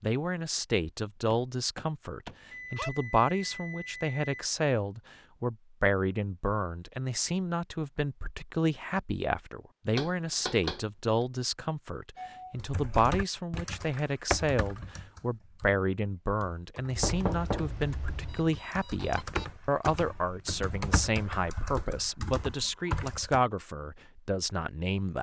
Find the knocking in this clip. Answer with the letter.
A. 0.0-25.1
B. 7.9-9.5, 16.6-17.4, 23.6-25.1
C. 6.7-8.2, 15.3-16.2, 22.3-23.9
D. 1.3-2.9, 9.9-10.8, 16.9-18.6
D.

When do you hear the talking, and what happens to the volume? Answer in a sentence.
The talking can be heard from 0.0 to 25.1 s, at a steady volume.